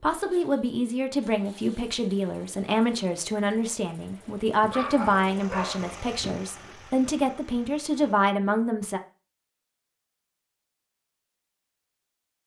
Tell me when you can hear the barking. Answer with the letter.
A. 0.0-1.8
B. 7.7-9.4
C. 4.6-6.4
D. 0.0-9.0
C.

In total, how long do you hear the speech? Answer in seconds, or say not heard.
9 s.